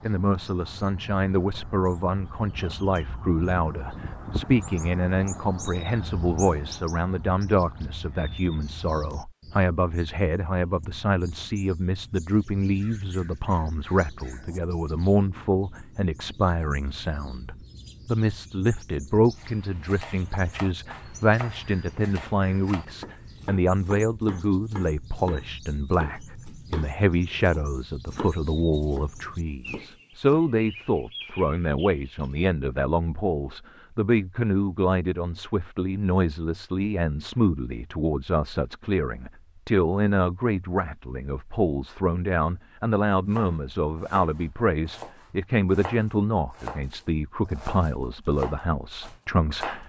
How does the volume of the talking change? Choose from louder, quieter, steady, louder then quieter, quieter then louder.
steady.